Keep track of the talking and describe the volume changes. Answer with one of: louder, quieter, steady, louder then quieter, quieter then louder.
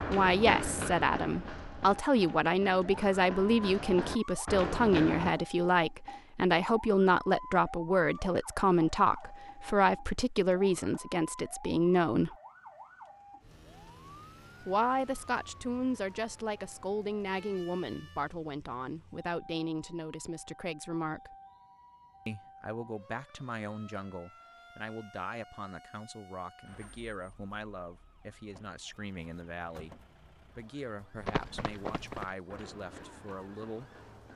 quieter.